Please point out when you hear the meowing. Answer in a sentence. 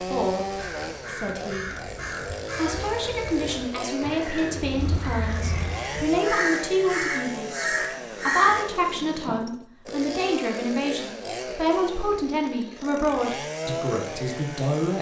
You can hear the meowing from 4.8 to 5.8 s.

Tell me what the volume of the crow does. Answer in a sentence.
The volume of the crow goes up.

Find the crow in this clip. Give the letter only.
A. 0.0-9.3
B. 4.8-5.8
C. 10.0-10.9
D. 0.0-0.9
A.